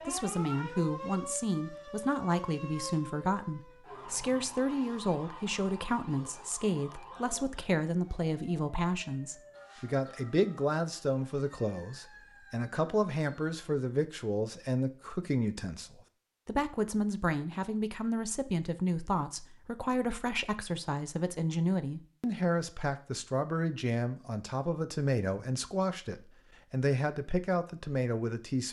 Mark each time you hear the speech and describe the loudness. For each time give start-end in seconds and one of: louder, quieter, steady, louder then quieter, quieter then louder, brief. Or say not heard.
0.1-28.6 steady.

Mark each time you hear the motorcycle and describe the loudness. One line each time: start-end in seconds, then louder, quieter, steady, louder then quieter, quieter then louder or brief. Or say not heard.
not heard.